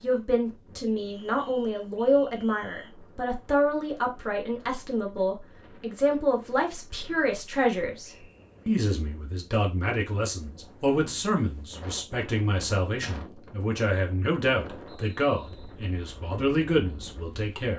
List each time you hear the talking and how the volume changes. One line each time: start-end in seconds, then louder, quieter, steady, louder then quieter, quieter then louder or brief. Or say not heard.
0.0-17.7 steady.